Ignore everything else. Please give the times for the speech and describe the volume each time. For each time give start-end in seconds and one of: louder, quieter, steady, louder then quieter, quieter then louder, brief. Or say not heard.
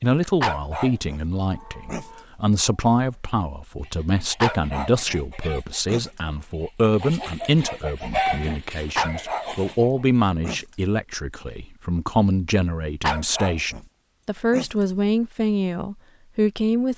0.0-16.9 steady.